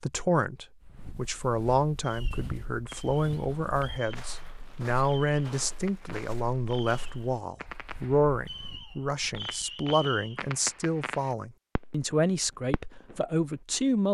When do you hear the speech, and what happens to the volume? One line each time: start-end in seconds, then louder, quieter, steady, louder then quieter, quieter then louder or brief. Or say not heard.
0.0-14.0 steady.